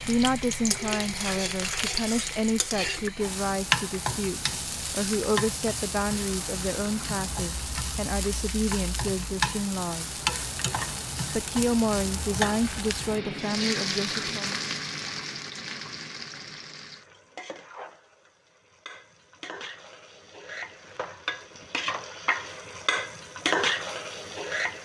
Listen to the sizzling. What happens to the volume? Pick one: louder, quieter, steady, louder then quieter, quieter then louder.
quieter then louder.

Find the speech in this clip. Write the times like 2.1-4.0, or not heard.
0.0-10.2, 11.3-14.6.